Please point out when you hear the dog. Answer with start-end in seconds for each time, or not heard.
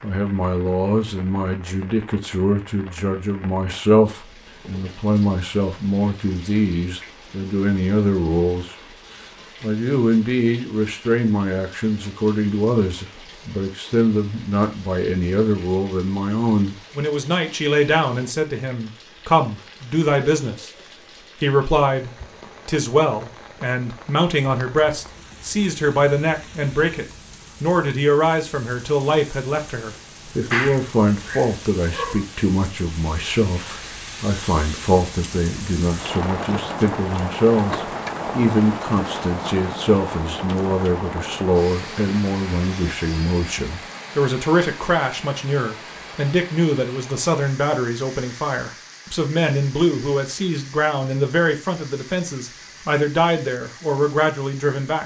30.3-32.2.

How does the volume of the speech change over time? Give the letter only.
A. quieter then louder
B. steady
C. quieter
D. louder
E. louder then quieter
B.